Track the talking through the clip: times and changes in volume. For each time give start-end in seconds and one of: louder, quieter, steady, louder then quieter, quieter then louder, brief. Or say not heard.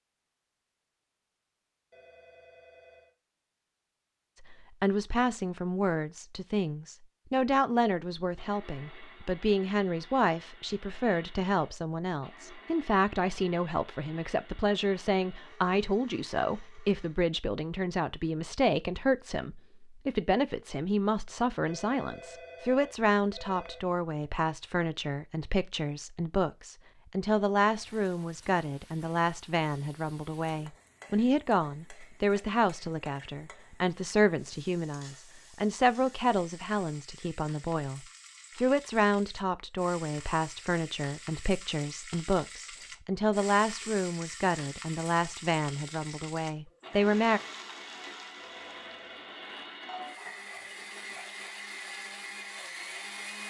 4.4-47.4 steady.